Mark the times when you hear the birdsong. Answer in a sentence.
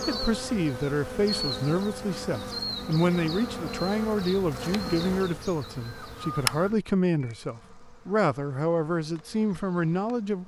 The birdsong can't be heard in this clip.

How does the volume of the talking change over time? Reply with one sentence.
The volume of the talking stays about the same.